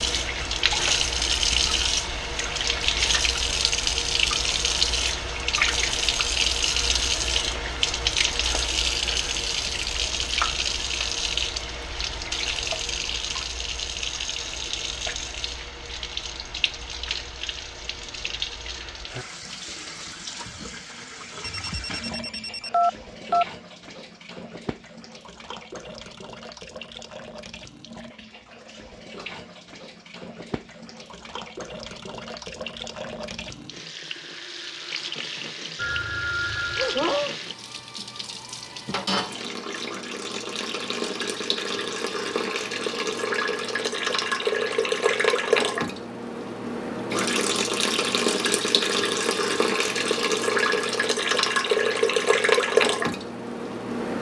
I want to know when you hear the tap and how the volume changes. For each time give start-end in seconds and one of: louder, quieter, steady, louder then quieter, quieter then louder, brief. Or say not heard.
0.0-54.1 quieter then louder.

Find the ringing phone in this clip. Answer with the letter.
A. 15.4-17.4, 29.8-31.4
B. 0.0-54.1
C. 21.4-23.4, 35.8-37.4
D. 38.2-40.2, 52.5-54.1
C.